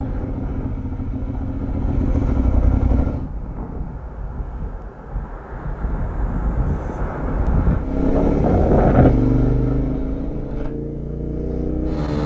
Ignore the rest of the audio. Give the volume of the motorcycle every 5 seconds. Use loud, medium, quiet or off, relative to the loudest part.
medium, loud, medium.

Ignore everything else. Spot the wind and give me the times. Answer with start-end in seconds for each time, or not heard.
0.0-9.1.